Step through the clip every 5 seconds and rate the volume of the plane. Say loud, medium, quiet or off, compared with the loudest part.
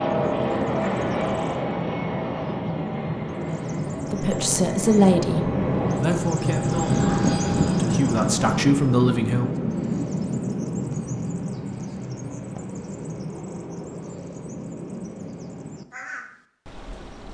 loud, loud, off, off.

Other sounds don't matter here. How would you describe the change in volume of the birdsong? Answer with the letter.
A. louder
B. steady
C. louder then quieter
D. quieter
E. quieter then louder
C.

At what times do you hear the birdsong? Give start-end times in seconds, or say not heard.
0.1-17.2.